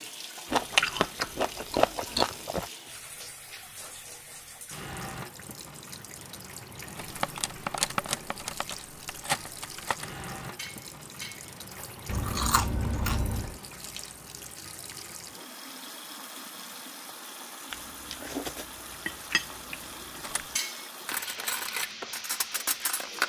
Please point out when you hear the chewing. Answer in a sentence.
You can hear the chewing from 0.5 to 2.6 s, from 12.1 to 13.6 s and from 17.7 to 20.6 s.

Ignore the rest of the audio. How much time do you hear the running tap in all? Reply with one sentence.
You can hear the running tap for 23 seconds altogether.